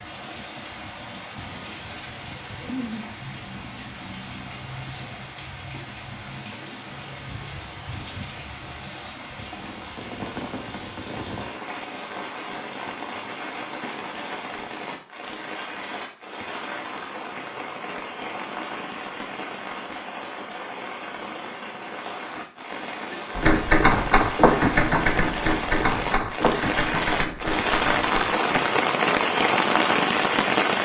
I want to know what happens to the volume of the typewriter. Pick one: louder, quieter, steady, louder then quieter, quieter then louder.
quieter.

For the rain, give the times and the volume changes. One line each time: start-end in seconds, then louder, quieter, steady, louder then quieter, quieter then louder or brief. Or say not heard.
0.0-30.7 louder.